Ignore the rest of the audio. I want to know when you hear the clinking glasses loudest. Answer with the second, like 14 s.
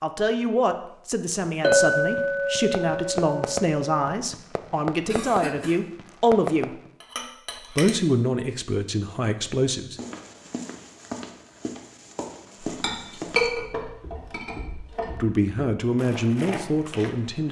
2 s.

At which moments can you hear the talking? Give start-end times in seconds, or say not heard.
0.0-6.8, 7.7-9.9, 15.2-17.4.